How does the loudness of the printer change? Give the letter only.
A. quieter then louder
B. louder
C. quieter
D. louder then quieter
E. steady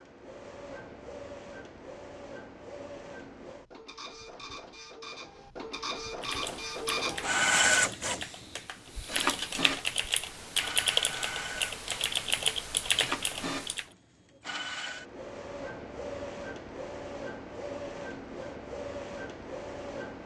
D.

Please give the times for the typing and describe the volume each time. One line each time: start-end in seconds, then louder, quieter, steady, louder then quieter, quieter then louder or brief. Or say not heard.
6.2-13.8 louder.